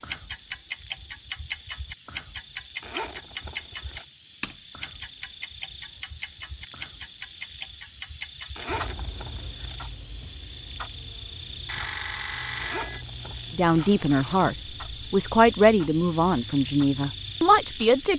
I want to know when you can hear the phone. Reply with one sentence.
The phone can be heard from 11.7 to 13.1 s.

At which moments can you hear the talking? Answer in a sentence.
The talking can be heard from 13.6 to 18.1 s.